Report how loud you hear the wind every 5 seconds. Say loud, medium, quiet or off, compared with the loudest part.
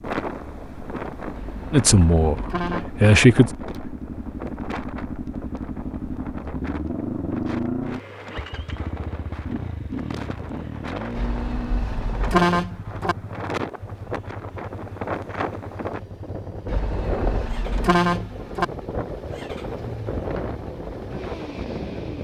loud, medium, loud, loud, loud.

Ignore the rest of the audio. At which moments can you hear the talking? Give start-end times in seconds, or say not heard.
1.7-3.5.